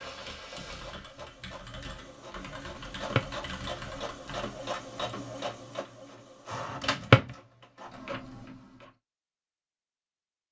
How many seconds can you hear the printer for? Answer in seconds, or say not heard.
9 s.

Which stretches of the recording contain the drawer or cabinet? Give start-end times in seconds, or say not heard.
2.9-3.4, 6.8-7.2.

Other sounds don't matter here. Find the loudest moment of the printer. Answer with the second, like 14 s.
5 s.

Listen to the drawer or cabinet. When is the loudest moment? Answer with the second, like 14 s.
7 s.